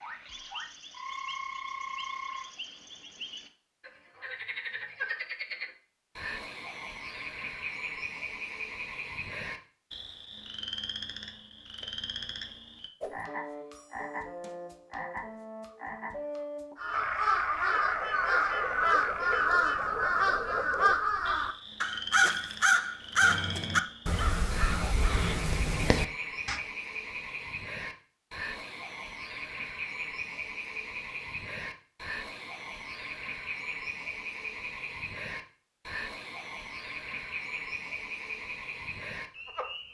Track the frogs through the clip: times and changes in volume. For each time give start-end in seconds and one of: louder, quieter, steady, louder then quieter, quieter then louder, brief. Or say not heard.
0.0-39.8 steady.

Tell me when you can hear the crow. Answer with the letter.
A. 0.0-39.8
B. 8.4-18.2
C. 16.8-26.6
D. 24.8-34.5
C.